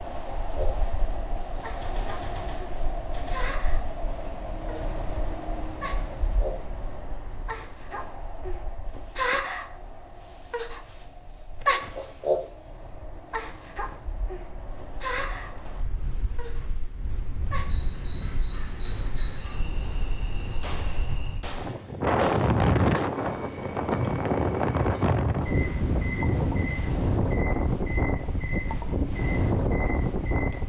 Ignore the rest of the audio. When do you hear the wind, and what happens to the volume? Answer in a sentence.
You can hear the wind from 0.0 to 30.6 s, getting quieter then louder.